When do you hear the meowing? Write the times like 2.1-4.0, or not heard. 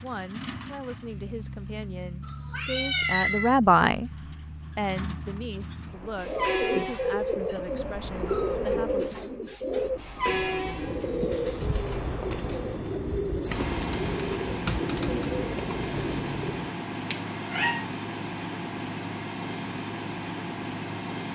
2.2-3.5, 7.8-8.7, 17.1-17.9.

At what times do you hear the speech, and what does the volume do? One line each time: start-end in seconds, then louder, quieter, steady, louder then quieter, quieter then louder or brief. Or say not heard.
0.0-4.1 louder
4.8-9.2 steady.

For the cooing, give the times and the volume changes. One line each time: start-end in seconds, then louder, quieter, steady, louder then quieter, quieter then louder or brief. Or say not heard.
6.2-16.8 steady.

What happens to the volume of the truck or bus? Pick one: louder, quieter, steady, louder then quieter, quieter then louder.
louder.